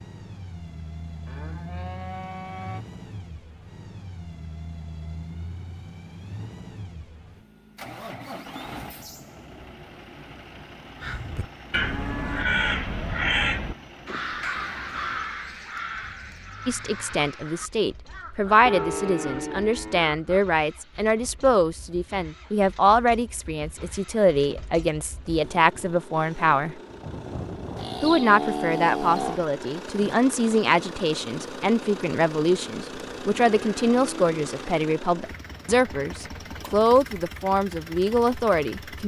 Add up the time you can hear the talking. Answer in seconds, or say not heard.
21 s.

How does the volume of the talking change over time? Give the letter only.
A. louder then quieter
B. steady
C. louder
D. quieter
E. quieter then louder
B.